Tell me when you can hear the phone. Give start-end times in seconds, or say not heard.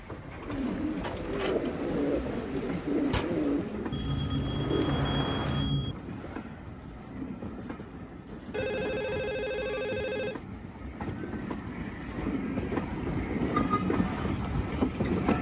3.9-6.0, 8.5-10.4.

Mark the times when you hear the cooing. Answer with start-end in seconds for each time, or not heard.
0.4-5.7.